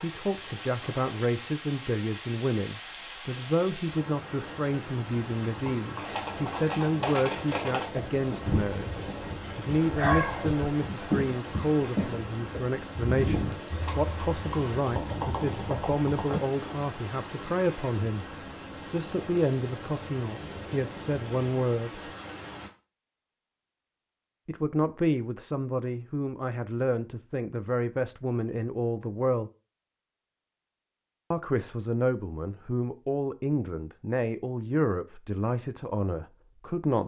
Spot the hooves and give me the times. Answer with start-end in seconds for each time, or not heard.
5.5-16.9.